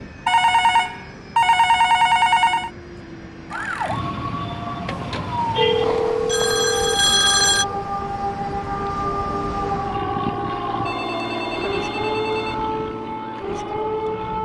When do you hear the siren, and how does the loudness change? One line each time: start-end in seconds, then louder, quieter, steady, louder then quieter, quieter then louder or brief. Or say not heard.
3.5-14.4 steady.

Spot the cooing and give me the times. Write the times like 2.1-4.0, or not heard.
not heard.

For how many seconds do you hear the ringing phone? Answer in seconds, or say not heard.
7 s.